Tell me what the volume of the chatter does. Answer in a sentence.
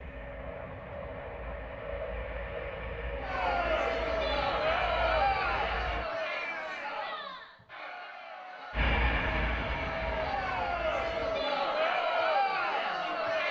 The loudness of the chatter goes down, then up.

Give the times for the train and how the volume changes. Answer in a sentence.
You can hear the train from 0.0 to 6.1 s, at a steady volume; and briefly from 8.7 to 11.4 s.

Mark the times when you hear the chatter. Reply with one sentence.
The chatter can be heard from 3.2 to 13.4 s.